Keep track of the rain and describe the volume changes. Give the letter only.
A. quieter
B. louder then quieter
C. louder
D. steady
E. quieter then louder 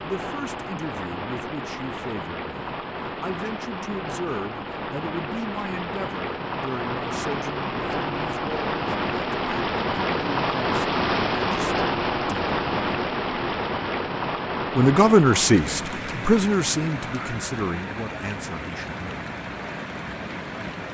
B.